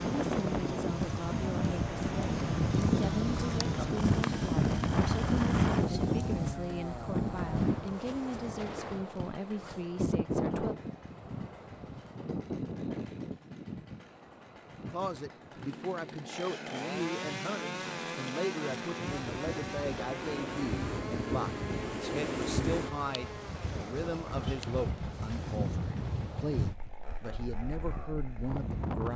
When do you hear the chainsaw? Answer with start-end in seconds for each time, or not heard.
0.0-29.0.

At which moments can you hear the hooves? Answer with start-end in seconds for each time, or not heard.
0.9-6.5.